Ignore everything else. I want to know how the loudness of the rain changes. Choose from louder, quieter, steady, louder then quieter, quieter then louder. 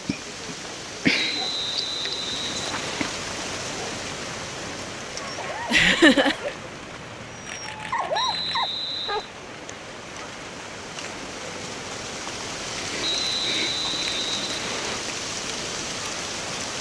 quieter then louder.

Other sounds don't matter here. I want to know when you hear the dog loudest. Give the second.
8 s.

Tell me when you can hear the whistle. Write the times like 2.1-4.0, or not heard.
1.1-3.1, 8.1-9.3, 13.0-15.0.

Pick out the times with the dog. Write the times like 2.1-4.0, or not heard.
5.2-9.2.